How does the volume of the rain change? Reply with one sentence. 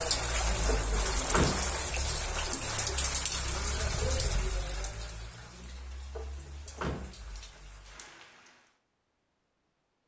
The volume of the rain goes down.